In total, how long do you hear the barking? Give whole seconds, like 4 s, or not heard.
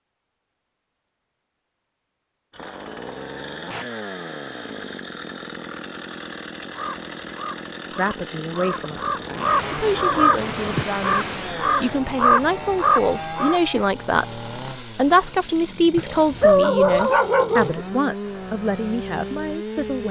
2 s.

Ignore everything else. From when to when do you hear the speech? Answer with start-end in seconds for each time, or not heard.
8.0-20.0.